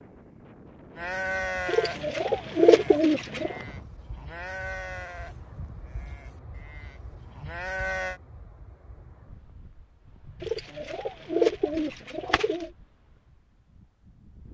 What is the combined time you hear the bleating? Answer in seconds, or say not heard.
7 s.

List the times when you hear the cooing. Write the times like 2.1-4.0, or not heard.
1.6-3.6, 10.4-12.7.